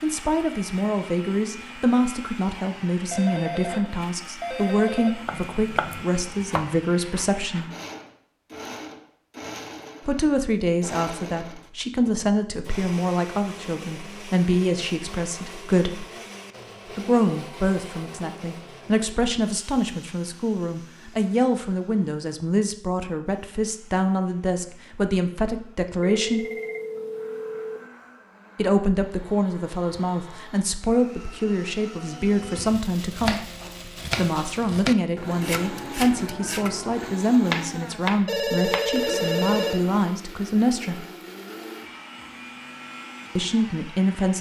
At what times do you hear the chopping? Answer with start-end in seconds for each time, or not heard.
5.2-7.3, 32.5-39.0.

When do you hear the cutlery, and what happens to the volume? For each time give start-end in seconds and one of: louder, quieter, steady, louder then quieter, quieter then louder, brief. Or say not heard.
not heard.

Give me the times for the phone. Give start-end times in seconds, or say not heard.
3.1-5.1, 26.0-27.9, 38.2-39.8.